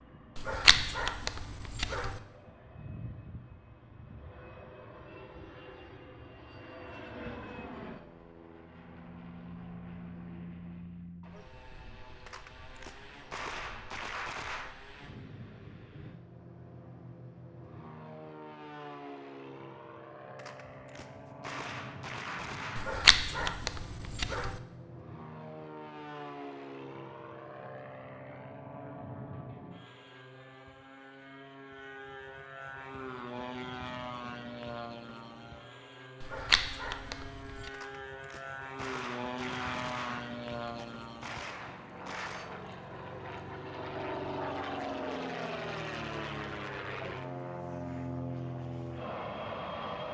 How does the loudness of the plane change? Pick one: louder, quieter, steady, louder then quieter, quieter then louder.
louder.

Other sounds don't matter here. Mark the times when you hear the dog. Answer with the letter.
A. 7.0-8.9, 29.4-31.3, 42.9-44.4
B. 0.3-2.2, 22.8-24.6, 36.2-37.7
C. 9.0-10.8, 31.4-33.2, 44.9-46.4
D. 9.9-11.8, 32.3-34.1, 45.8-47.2
B.